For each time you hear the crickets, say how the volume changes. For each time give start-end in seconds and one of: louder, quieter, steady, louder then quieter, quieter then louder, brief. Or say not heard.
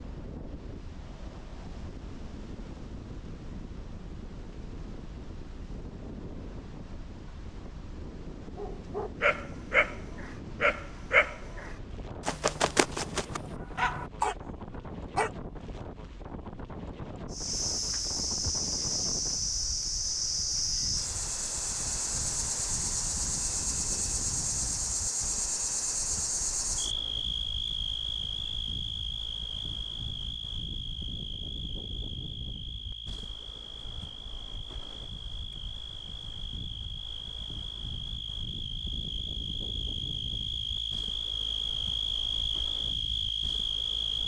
17.3-44.2 quieter then louder.